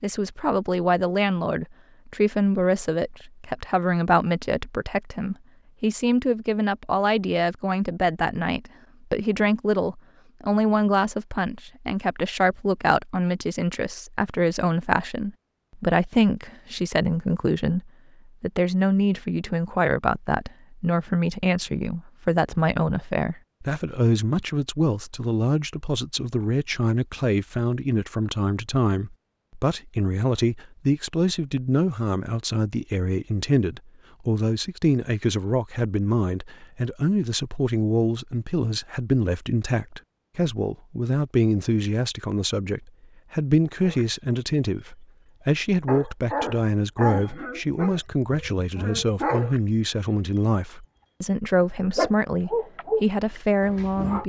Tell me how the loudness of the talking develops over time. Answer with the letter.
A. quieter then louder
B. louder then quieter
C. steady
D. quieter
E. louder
C.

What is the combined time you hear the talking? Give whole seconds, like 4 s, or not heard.
54 s.